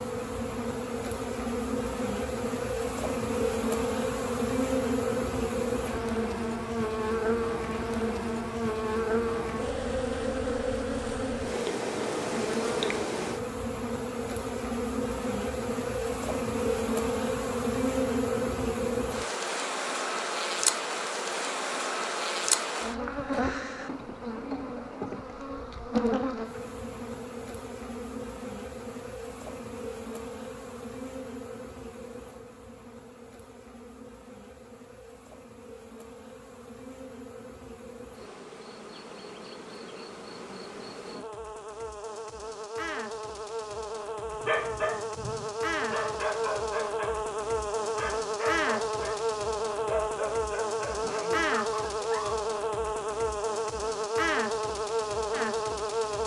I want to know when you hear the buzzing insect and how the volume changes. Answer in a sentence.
You can hear the buzzing insect from 0.0 to 56.2 s, getting quieter then louder.